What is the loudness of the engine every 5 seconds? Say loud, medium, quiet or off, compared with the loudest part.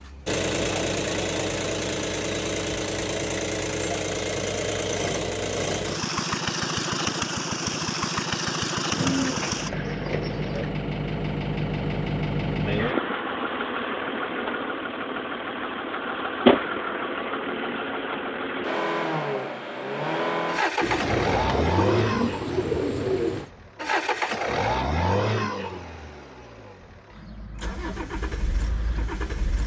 loud, loud, loud, loud, loud, medium.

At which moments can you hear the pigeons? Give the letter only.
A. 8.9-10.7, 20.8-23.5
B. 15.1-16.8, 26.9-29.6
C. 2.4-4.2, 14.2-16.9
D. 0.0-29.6
A.